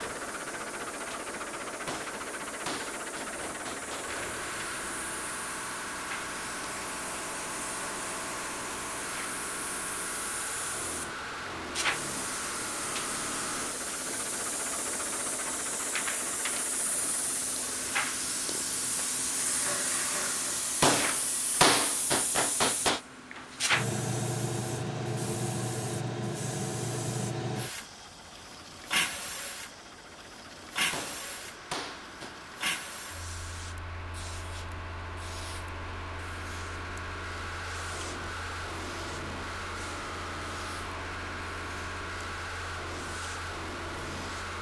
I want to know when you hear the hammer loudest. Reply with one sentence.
The volume of the hammer peaks at 22 seconds.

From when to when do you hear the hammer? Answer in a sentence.
You can hear the hammer from 1.9 to 4.3 s, from 20.8 to 23.0 s and from 30.9 to 32.4 s.